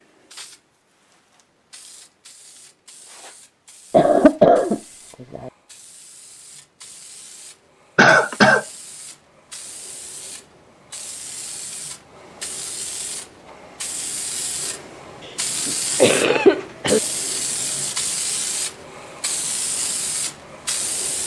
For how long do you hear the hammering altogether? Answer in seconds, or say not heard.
not heard.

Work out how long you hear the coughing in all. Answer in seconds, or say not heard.
4 s.